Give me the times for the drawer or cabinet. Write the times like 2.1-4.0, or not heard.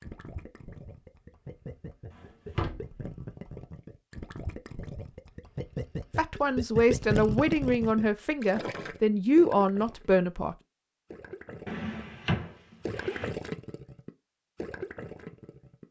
2.1-3.0, 11.7-13.3.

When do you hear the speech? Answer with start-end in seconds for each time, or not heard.
6.2-10.6.